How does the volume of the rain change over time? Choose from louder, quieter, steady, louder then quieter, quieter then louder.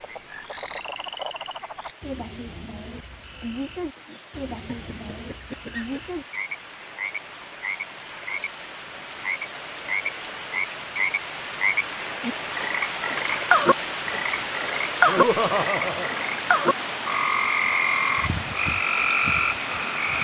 louder.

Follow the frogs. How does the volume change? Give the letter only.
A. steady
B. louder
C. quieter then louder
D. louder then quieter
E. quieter
B.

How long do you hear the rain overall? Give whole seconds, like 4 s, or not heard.
20 s.